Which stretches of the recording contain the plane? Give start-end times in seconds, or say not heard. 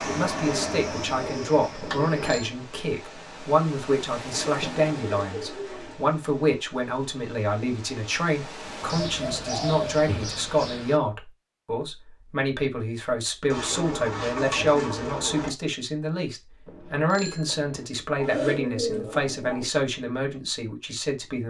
0.0-2.5.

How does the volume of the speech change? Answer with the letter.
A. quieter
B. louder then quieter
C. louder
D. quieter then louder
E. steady
E.